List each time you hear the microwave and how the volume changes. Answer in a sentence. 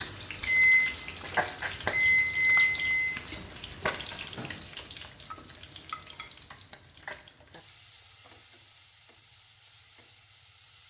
The microwave can be heard from 0.2 to 4.9 s, getting quieter.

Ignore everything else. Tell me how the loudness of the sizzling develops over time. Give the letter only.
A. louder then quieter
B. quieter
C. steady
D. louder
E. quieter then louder
B.